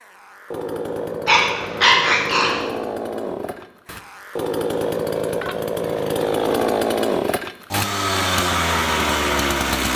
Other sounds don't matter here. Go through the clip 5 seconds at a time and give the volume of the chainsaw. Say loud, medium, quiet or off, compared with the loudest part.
medium, loud.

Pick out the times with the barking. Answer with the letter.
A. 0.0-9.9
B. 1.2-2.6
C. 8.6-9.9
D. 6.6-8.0
B.